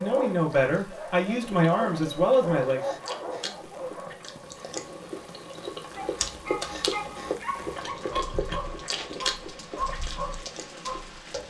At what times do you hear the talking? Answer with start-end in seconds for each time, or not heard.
0.0-2.9.